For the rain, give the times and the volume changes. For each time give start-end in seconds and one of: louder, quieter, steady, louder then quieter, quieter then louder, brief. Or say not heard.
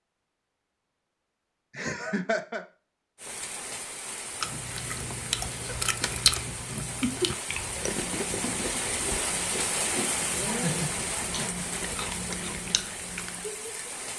3.1-14.1 louder then quieter.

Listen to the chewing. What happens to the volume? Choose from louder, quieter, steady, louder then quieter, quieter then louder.
quieter.